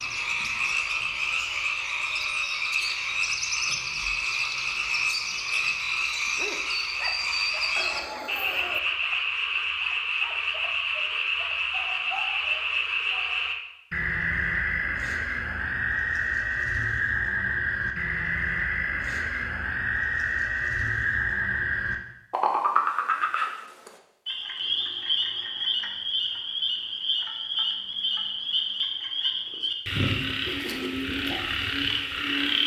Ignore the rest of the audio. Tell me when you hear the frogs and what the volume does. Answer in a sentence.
The frogs can be heard from 0.0 to 32.6 s, at a steady volume.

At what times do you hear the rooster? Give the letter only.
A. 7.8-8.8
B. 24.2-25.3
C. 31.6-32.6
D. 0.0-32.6
A.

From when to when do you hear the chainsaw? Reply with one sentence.
You can't hear the chainsaw here.